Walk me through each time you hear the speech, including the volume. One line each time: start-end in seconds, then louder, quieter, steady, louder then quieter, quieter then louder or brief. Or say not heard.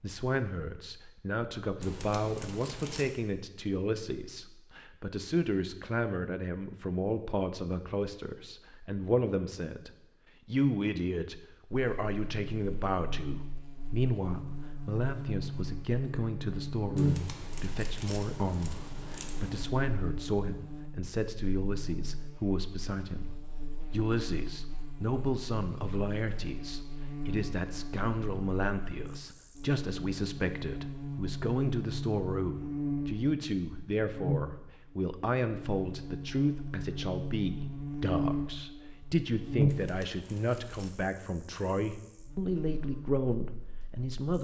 0.0-44.3 steady.